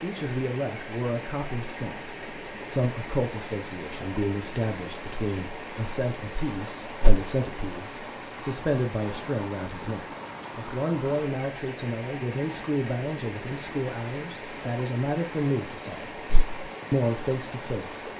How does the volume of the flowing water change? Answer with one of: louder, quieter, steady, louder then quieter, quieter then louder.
steady.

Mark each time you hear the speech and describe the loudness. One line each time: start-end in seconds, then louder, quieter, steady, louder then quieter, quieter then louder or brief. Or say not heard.
0.0-16.2 steady
16.9-18.1 brief.